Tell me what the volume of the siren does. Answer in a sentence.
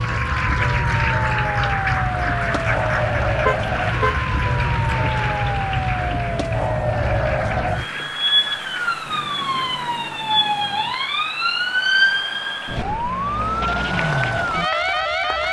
The loudness of the siren stays about the same.